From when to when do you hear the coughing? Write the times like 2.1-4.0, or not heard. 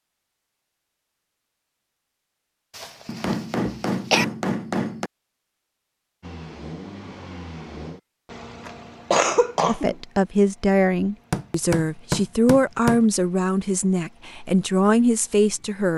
2.8-4.2, 8.7-9.9.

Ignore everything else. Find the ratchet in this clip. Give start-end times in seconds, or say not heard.
not heard.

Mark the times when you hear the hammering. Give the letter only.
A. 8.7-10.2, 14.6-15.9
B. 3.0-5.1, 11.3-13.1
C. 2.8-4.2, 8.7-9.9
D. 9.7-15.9
B.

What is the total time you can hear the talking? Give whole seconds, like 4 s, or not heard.
6 s.